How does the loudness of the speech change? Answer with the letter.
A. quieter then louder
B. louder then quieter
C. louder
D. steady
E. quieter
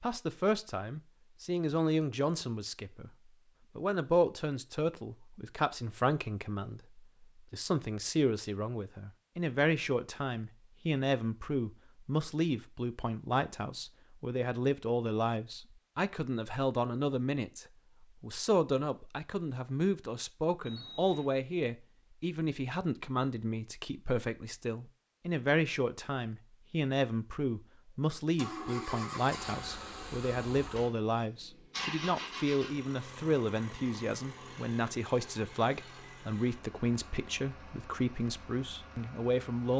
D.